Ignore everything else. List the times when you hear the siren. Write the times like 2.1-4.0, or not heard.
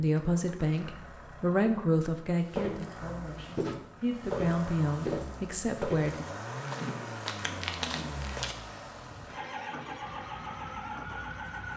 9.9-11.7.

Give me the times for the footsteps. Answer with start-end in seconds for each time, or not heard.
2.5-8.6.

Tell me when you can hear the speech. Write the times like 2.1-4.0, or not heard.
0.0-6.2.